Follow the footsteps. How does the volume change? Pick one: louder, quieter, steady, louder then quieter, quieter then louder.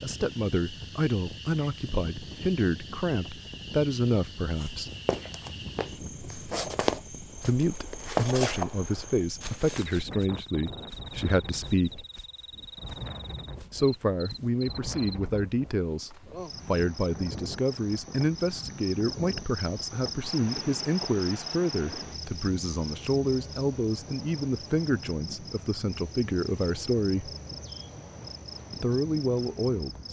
louder then quieter.